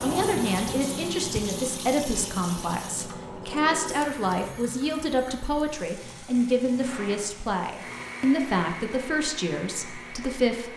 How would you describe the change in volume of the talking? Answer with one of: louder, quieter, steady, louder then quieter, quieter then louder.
steady.